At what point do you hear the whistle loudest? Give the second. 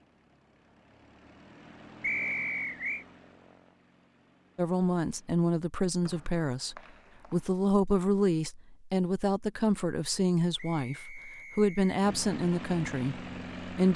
2 s.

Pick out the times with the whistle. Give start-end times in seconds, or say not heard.
2.0-3.0, 6.0-7.5, 10.6-11.9.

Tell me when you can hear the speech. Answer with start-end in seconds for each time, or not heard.
4.5-13.9.